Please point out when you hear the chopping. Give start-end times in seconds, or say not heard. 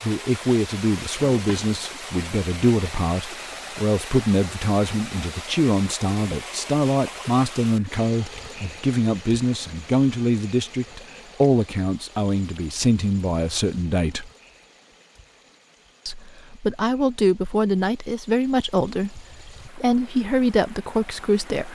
not heard.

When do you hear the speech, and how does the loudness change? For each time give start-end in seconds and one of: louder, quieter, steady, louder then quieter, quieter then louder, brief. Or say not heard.
0.0-14.3 steady
16.1-21.6 steady.